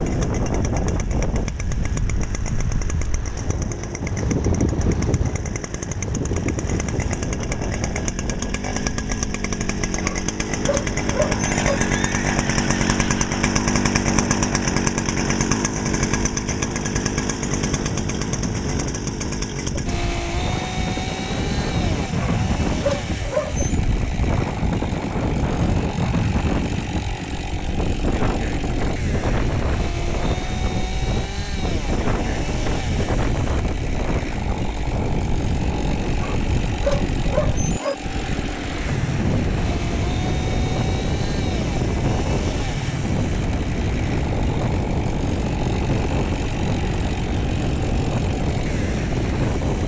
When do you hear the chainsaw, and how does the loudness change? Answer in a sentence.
The chainsaw can be heard from 0.0 to 49.8 s, getting louder then quieter.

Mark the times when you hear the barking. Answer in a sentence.
You can hear the barking from 10.0 to 11.8 s, from 22.1 to 23.8 s and from 36.1 to 38.0 s.